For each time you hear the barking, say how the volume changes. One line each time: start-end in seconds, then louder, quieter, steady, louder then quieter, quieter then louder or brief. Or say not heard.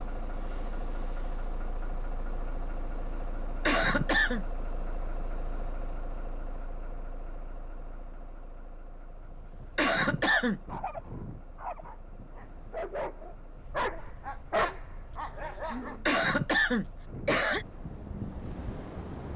10.2-16.1 louder then quieter.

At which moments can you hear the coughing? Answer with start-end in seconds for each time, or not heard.
3.6-4.5, 9.8-10.6, 16.1-17.6.